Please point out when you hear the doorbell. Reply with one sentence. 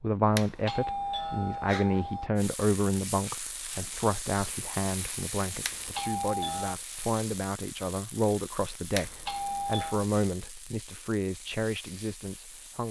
The doorbell can be heard from 0.3 to 2.3 s, from 5.6 to 6.8 s and from 8.9 to 10.1 s.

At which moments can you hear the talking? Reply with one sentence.
You can hear the talking from 0.0 to 12.8 s.